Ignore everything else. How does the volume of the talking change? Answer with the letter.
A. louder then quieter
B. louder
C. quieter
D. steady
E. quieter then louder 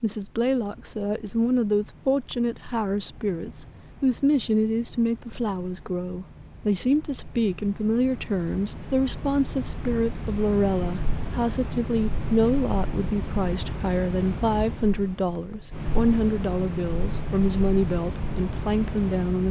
D.